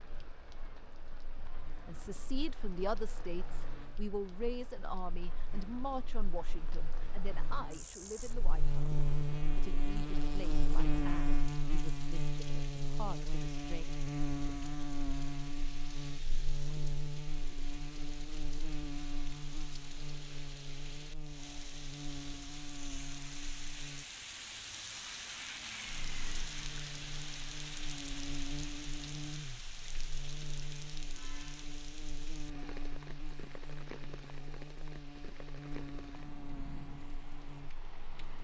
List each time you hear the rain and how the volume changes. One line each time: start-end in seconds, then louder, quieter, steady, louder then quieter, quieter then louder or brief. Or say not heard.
0.0-38.3 louder then quieter.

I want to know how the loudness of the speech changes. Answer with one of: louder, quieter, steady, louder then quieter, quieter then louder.
quieter.